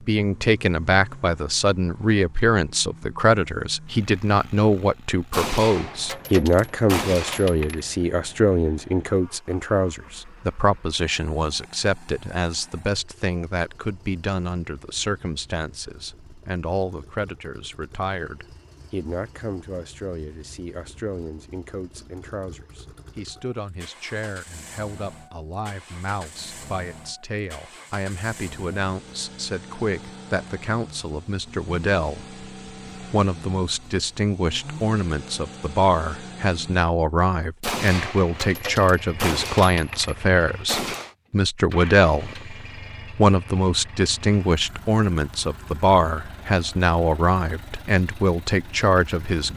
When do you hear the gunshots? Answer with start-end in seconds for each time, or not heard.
5.3-7.8, 37.6-41.1.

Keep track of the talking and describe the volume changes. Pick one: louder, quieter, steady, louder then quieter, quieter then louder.
quieter then louder.